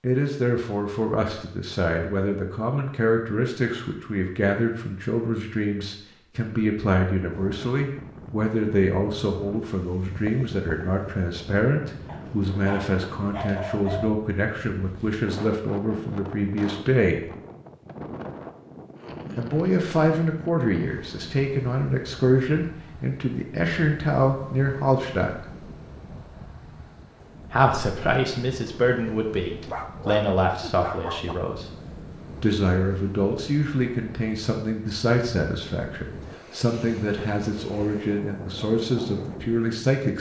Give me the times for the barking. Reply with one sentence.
You can hear the barking from 12.1 to 14.1 s and from 29.6 to 31.4 s.